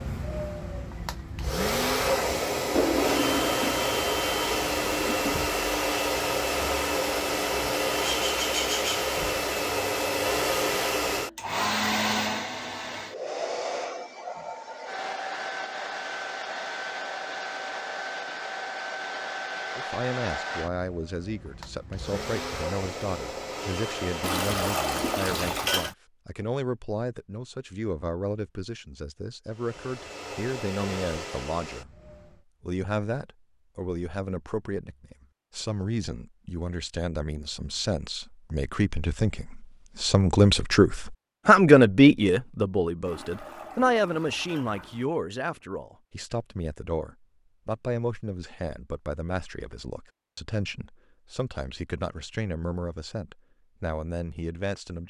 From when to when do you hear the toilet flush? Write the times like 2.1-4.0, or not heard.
2.7-5.4, 24.2-25.9, 43.0-45.0.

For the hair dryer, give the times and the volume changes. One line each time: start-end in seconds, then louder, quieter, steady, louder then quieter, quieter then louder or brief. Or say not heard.
0.0-25.6 quieter
29.4-32.4 brief.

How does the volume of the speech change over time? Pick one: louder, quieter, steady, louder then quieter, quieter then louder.
louder then quieter.